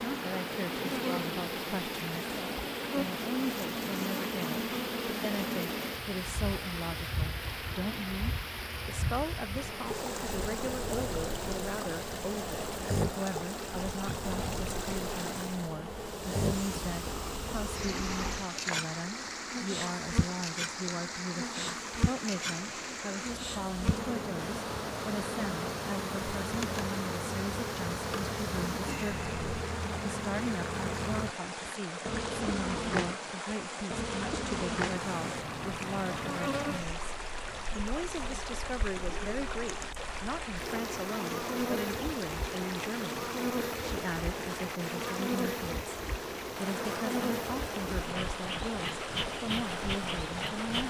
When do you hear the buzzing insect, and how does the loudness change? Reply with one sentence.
You can hear the buzzing insect from 0.0 to 50.8 s, at a steady volume.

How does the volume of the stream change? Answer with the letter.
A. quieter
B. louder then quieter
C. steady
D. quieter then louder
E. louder
C.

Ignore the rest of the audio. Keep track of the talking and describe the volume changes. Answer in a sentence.
The volume of the talking stays about the same.